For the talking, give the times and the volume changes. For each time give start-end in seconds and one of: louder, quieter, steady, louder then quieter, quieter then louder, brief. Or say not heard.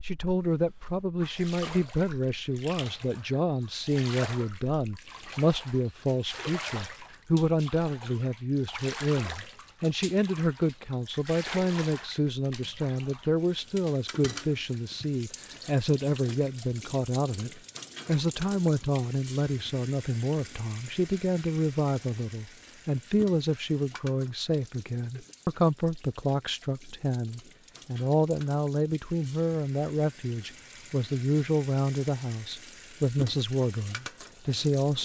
0.0-34.9 steady.